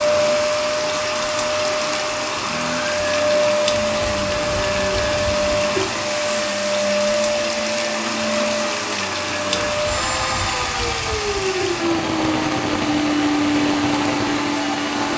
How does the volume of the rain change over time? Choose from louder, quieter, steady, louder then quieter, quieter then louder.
steady.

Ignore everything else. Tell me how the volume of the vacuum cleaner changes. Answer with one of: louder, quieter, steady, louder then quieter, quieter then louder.
steady.